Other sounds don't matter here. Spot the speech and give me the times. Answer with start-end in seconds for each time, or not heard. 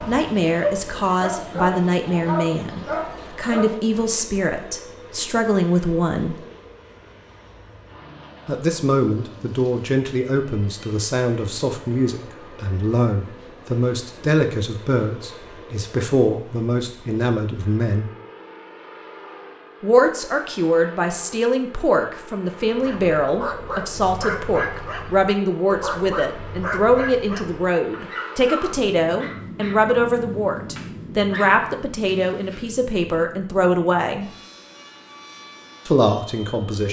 0.1-6.3, 8.4-18.1, 19.8-34.2, 35.9-36.8.